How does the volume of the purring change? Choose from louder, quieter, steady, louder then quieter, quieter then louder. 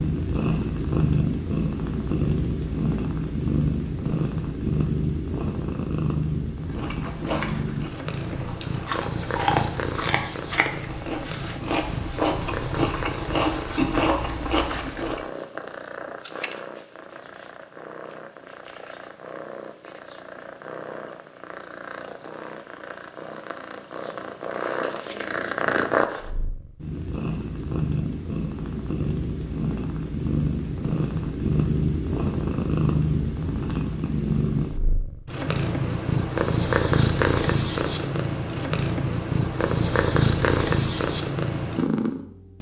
quieter then louder.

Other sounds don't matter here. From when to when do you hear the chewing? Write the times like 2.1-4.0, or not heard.
6.7-15.2.